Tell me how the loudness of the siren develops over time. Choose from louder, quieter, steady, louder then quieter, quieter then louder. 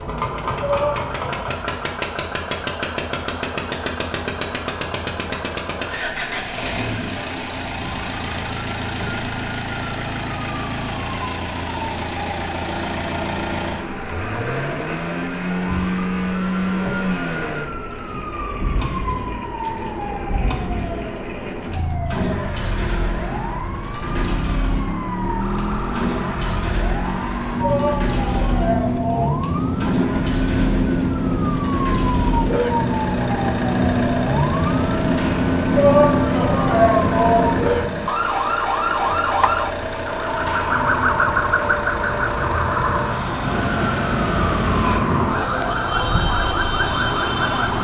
louder.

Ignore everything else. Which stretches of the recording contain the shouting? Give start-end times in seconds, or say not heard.
0.6-1.5, 27.6-29.4, 35.7-37.5.